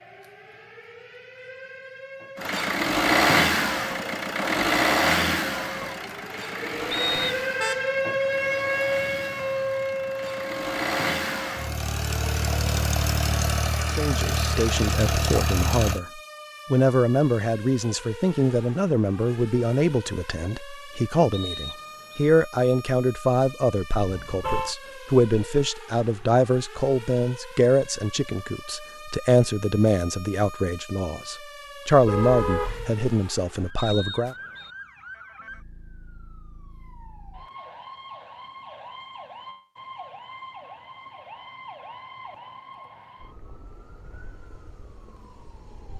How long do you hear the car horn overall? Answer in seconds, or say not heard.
2 s.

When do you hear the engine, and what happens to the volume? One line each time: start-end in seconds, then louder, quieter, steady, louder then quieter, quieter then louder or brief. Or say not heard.
2.4-16.0 quieter then louder.